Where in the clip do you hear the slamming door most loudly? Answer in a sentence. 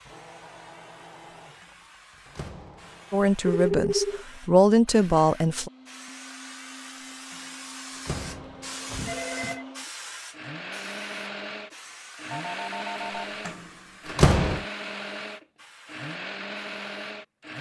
The volume of the slamming door peaks at 14 seconds.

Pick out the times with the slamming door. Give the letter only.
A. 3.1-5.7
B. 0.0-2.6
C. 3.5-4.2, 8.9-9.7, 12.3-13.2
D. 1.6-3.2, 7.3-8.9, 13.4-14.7
D.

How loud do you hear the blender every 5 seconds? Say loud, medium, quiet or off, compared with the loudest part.
quiet, medium, loud, loud.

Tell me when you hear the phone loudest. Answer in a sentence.
The loudest moment of the phone is at 4 seconds.